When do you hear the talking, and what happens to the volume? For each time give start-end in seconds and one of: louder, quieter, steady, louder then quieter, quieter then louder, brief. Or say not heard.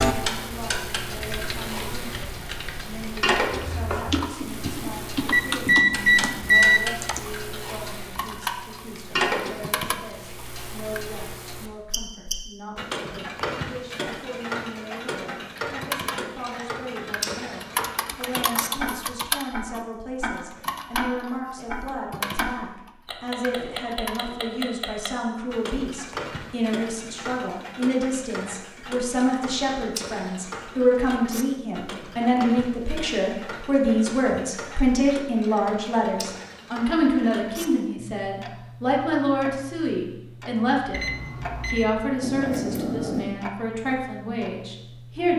0.1-45.3 louder.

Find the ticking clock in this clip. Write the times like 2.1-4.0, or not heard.
0.0-45.3.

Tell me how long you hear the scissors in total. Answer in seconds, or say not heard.
2 s.